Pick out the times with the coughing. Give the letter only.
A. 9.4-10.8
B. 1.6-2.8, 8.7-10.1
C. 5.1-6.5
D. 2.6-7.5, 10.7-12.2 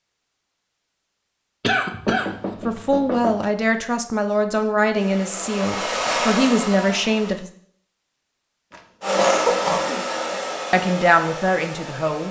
B.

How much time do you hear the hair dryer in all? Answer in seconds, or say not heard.
6 s.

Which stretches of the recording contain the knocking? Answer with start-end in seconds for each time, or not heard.
2.0-3.5.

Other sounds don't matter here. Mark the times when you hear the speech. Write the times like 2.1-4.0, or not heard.
2.6-7.5, 10.7-12.2.